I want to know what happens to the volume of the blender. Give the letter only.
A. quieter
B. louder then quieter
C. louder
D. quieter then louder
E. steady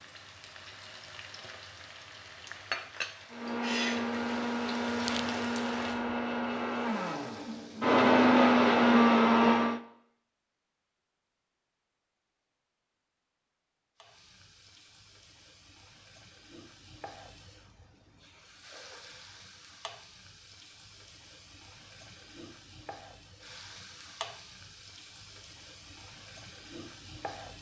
C.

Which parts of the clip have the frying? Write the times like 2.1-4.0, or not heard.
0.0-8.0, 13.9-27.5.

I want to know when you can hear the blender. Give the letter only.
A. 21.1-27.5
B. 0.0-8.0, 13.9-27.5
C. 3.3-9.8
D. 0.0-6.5
C.